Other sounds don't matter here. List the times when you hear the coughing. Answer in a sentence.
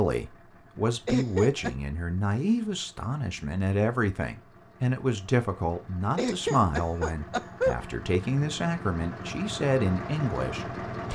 The coughing can be heard from 1.1 to 1.7 s and from 6.2 to 7.8 s.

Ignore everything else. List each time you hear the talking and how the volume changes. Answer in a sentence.
You can hear the talking from 0.0 to 11.0 s, at a steady volume.